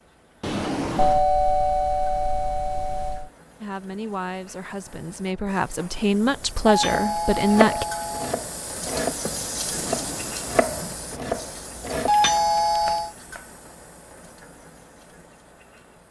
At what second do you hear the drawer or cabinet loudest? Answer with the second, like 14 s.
1 s.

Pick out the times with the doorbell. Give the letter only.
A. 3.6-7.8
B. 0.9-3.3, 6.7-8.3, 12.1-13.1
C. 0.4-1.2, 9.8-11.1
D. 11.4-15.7
B.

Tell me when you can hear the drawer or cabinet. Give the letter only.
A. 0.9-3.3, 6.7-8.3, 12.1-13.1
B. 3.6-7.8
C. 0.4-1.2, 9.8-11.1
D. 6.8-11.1
C.